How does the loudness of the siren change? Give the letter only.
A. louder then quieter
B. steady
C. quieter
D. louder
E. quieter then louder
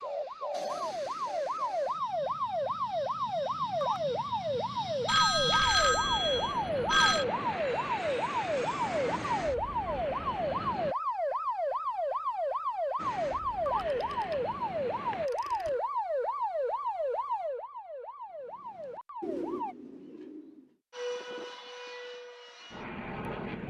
B.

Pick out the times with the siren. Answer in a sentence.
The siren can be heard from 0.0 to 19.8 s.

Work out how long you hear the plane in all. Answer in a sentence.
The plane can be heard for 16 seconds in total.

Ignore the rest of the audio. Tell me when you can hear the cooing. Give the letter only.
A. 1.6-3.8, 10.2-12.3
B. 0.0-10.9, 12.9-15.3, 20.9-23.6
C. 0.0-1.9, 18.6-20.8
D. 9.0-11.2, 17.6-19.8
C.